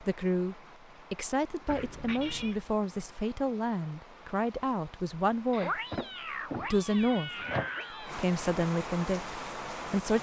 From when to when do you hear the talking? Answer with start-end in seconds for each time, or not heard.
0.0-5.8, 6.7-7.3, 8.0-10.1.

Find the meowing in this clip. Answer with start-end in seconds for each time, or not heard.
1.6-2.6, 5.5-8.2.